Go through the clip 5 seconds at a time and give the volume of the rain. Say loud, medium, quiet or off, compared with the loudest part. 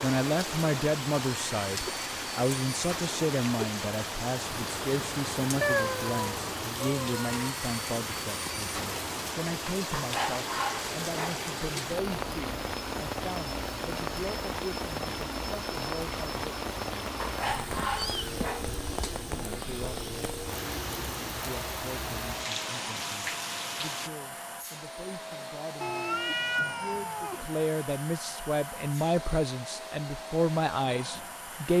loud, loud, loud, loud, loud, off, off.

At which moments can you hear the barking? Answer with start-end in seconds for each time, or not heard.
9.9-11.9, 17.1-19.1.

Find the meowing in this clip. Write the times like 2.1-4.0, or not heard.
5.6-7.5, 17.9-18.6, 25.8-27.4.